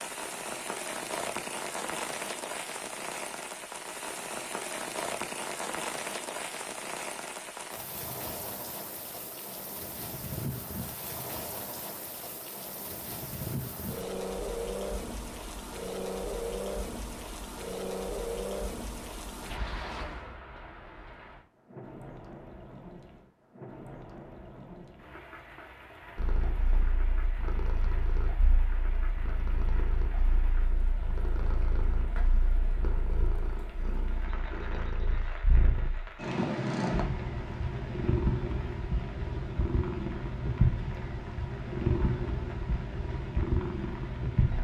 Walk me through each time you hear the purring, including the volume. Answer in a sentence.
The purring can be heard from 26.1 to 44.5 s, getting louder.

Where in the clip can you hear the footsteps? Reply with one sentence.
You can't hear the footsteps here.